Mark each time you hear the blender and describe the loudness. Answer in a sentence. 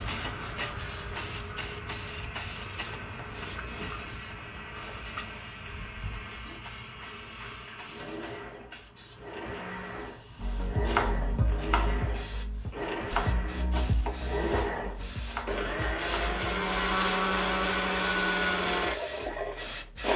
The blender can be heard from 0.0 to 20.1 s, getting louder.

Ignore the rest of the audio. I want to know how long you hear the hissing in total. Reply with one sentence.
You can hear the hissing for 20 seconds altogether.